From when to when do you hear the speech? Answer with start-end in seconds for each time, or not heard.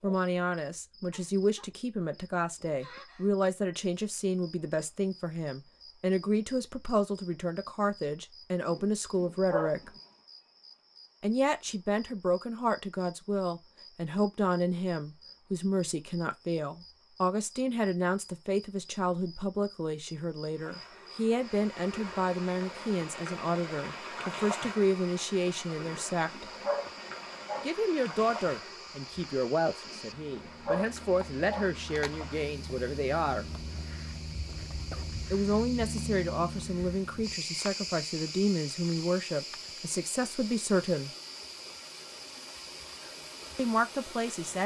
0.0-9.9, 11.2-26.4, 27.6-33.5, 35.3-41.1, 43.5-44.6.